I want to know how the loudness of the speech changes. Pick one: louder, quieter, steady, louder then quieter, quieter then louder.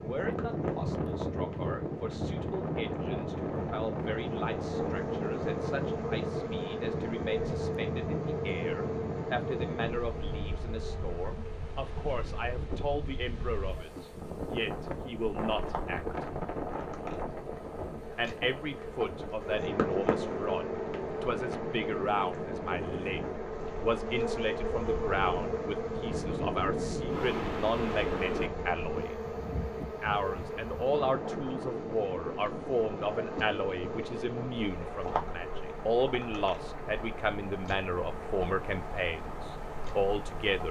louder.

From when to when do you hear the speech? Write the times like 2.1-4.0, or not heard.
0.0-16.2, 18.1-29.2, 30.0-40.6.